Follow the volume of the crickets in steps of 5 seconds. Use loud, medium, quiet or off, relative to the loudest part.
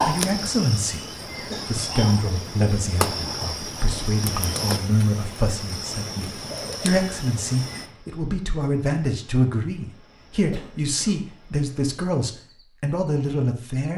loud, medium, quiet.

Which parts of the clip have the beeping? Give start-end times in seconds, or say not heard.
not heard.